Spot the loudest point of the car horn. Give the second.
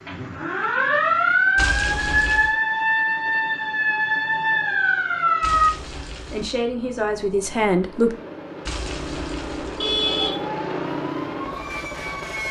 10 s.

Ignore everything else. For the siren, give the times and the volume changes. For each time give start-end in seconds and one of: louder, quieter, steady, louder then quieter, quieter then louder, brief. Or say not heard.
0.0-5.7 steady
10.1-12.4 brief.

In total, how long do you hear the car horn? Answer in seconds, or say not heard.
4 s.